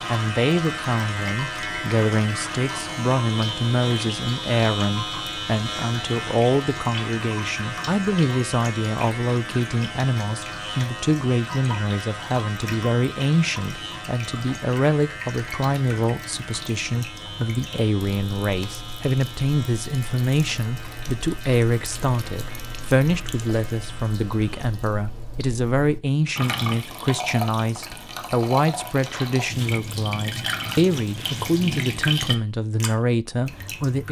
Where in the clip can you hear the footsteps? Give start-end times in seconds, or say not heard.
not heard.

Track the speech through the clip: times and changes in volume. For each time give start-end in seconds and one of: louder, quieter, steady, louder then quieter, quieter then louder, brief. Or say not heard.
0.1-34.0 steady.